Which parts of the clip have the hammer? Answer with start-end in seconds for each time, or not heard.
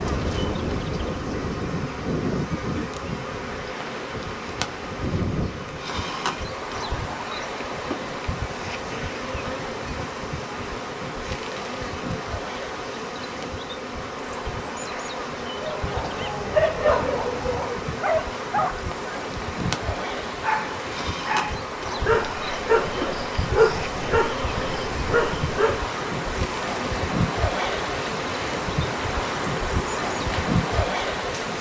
not heard.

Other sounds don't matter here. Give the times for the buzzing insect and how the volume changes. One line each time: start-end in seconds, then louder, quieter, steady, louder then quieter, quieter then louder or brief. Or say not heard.
0.0-31.5 steady.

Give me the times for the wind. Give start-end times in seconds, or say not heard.
0.0-31.5.